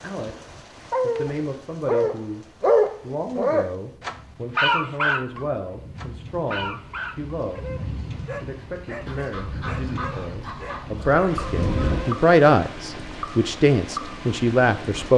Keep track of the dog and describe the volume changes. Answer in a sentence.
The loudness of the dog goes down.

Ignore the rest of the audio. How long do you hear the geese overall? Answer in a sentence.
You can hear the geese for 3 seconds altogether.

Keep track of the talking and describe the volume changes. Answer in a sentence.
The loudness of the talking goes up.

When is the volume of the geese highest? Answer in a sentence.
The volume of the geese peaks at 12 seconds.